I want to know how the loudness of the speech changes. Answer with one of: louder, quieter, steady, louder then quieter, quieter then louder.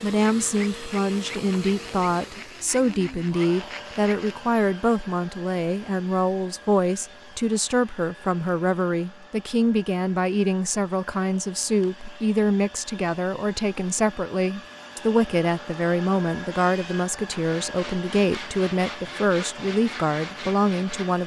steady.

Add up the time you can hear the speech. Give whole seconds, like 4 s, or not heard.
21 s.